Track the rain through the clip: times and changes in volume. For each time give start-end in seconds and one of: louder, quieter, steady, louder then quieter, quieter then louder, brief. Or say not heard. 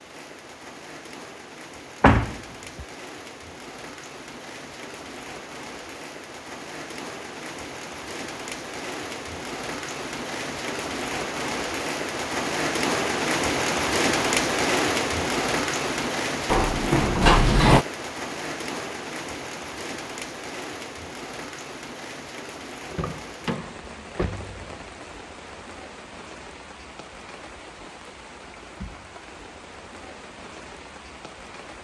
0.0-31.7 louder then quieter.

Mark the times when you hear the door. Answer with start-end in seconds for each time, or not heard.
2.0-2.9, 16.5-17.9, 22.9-24.8.